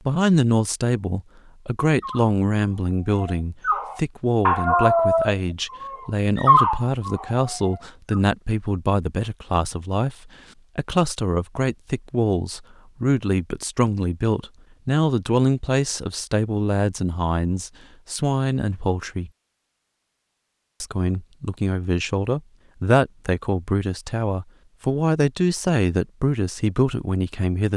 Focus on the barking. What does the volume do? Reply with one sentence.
The loudness of the barking goes up, then down.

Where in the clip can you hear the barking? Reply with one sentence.
You can hear the barking from 1.9 to 8.2 s.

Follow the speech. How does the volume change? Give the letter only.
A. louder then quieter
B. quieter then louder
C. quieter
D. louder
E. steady
E.